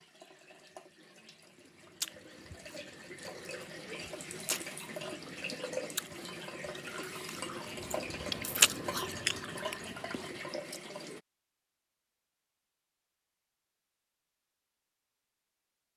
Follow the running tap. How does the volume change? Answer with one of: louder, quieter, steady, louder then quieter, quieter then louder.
louder.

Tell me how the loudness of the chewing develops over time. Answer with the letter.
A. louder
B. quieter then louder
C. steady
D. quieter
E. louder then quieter
E.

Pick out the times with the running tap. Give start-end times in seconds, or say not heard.
0.0-11.2.